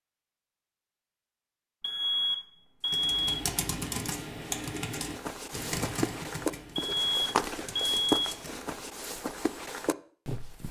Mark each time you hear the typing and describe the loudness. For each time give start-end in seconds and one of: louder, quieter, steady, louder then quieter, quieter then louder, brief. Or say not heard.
2.9-8.7 quieter.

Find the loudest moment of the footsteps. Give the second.
8 s.